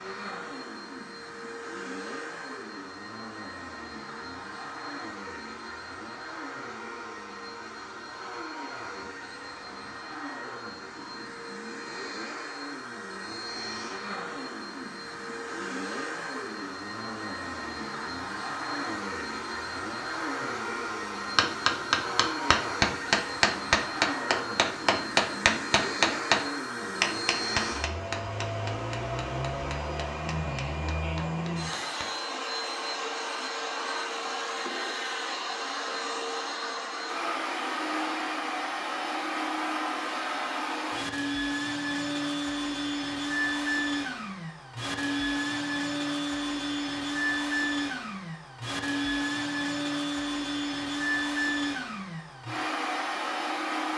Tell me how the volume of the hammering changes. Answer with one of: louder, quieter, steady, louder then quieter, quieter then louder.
quieter.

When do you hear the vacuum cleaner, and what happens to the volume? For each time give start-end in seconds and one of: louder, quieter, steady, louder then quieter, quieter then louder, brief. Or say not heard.
0.0-53.9 louder.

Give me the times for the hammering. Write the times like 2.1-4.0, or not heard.
21.4-32.1.